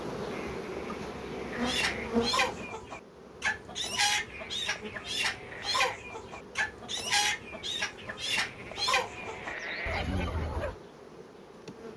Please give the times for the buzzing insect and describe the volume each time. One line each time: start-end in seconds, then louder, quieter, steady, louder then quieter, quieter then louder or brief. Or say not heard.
0.0-11.9 quieter.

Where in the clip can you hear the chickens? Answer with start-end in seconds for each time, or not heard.
1.5-10.8.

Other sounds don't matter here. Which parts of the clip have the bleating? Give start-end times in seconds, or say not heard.
0.3-2.3, 4.3-6.0, 8.2-10.2.